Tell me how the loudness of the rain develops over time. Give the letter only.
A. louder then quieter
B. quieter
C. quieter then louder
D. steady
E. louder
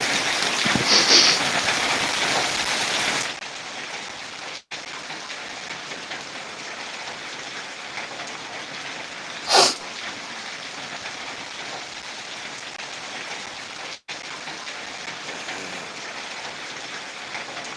B.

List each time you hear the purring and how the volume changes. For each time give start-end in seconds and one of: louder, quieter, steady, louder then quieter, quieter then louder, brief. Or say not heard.
not heard.